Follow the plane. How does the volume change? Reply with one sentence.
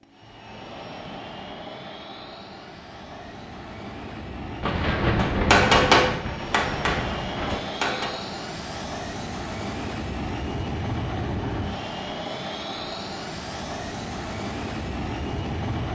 The volume of the plane goes up.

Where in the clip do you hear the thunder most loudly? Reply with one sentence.
The loudest moment of the thunder is at 5 seconds.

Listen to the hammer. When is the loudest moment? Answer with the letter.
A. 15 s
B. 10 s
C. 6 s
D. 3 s
C.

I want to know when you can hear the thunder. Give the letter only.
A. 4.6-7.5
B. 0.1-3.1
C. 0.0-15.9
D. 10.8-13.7
A.